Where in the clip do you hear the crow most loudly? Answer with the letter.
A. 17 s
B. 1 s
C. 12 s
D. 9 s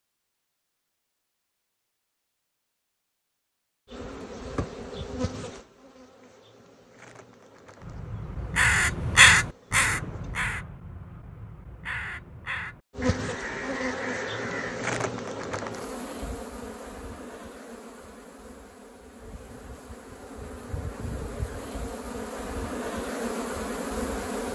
D.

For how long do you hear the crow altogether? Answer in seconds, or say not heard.
7 s.